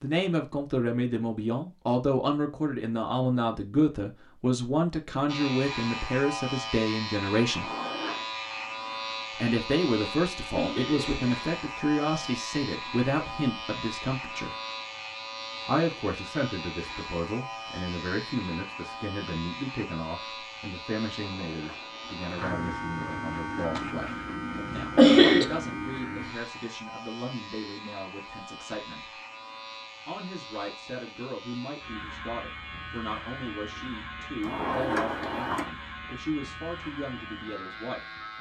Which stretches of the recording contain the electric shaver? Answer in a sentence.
The electric shaver can be heard from 5.2 to 38.3 s.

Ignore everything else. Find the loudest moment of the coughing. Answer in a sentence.
The volume of the coughing peaks at 25 seconds.